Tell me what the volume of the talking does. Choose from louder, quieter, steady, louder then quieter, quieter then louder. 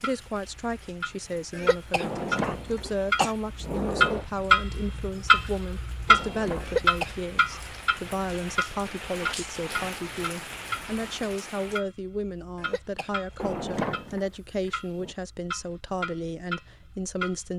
steady.